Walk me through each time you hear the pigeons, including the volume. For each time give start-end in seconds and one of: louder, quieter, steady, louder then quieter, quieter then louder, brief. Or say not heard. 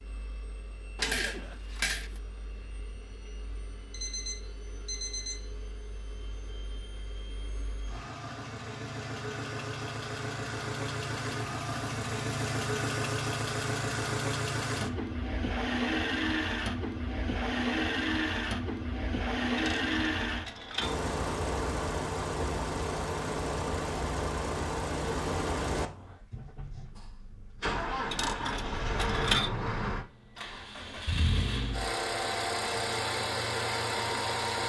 not heard.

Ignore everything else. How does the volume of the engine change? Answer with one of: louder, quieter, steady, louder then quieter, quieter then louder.
louder.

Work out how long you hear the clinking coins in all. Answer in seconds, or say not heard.
4 s.